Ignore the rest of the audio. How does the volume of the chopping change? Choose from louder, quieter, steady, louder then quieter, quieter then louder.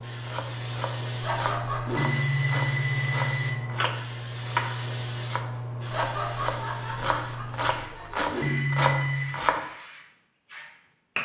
louder.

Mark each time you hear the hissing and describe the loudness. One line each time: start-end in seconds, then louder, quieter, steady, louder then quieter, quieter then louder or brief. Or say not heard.
0.0-11.1 quieter.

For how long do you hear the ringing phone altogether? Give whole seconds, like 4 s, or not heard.
3 s.